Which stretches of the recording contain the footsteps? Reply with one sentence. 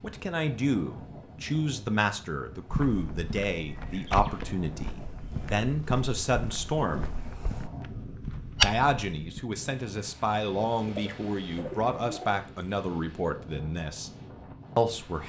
You can hear the footsteps from 2.6 to 9.4 s.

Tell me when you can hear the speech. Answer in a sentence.
The speech can be heard from 0.0 to 7.1 s, from 8.6 to 14.1 s and from 14.8 to 15.2 s.